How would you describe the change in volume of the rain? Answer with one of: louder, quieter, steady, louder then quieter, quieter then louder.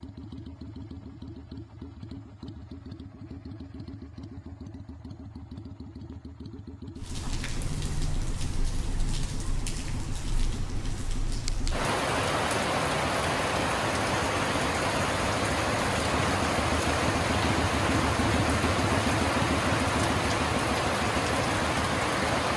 louder.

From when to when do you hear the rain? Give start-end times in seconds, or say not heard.
7.0-22.5.